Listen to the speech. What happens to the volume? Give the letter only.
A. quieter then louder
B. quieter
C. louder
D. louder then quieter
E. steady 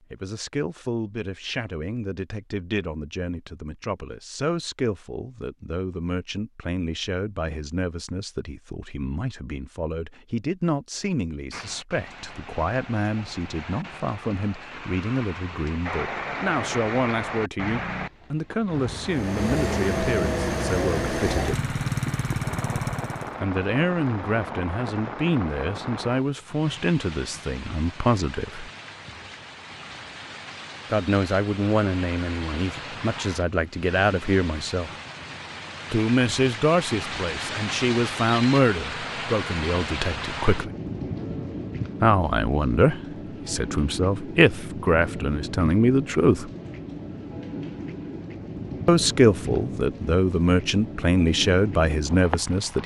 C.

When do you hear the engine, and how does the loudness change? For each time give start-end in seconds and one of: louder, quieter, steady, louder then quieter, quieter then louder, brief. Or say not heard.
19.0-23.4 steady.